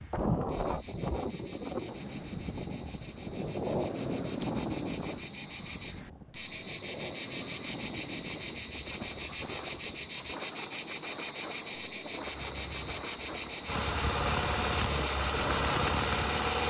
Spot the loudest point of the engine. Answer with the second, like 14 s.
16 s.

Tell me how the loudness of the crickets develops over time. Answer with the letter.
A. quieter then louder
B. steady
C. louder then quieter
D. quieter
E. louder
E.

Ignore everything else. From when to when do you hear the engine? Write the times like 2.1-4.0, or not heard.
12.2-16.6.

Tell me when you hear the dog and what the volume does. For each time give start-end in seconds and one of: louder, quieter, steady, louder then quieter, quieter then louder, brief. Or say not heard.
not heard.